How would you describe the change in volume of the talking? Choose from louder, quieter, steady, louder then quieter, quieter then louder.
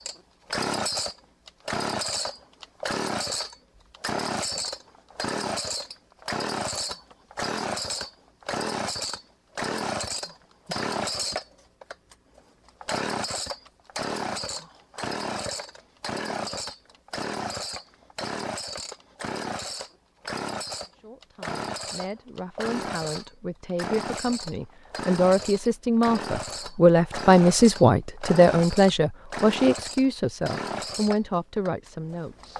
louder then quieter.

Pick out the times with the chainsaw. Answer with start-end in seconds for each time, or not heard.
0.0-32.5.